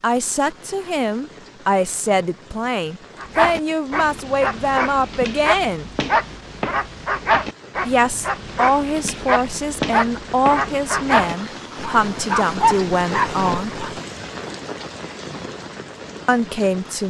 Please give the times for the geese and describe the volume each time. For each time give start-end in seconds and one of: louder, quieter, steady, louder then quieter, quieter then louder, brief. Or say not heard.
not heard.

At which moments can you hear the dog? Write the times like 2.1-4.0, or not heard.
3.1-14.0.